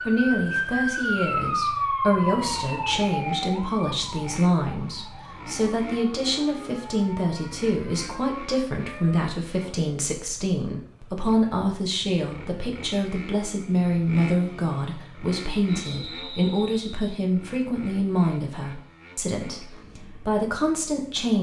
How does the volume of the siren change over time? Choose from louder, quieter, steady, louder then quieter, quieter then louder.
quieter.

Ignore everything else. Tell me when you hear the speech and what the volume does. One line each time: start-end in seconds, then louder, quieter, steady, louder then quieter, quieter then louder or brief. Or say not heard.
0.1-21.3 steady.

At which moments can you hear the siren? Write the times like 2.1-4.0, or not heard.
0.0-9.2.